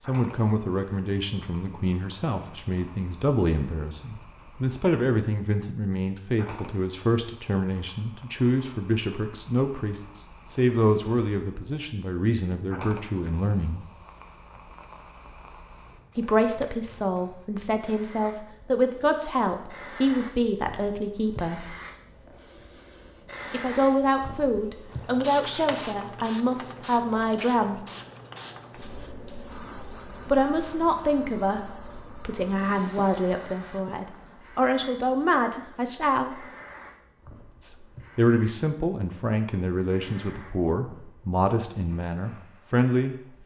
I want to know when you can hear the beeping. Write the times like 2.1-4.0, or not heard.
not heard.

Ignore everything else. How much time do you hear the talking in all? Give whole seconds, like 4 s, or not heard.
36 s.